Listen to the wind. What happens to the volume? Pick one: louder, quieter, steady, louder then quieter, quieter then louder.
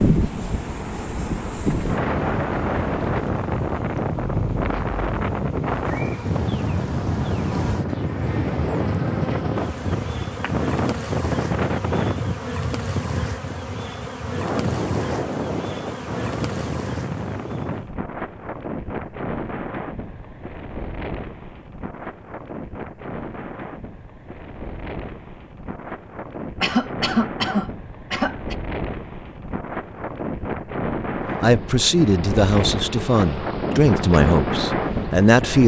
quieter then louder.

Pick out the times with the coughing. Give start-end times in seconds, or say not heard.
26.6-28.6.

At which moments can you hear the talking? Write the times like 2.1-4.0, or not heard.
31.4-35.6.